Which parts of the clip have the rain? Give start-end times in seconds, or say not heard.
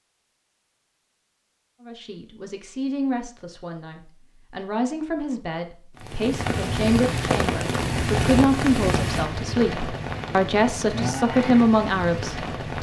6.0-12.7.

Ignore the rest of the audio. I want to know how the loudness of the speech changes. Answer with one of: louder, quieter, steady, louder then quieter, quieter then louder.
louder.